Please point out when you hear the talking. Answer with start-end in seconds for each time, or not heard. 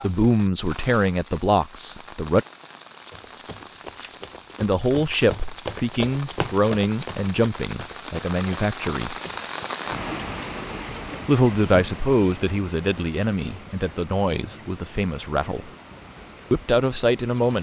0.0-2.5, 4.6-9.2, 11.2-15.7, 16.5-17.5.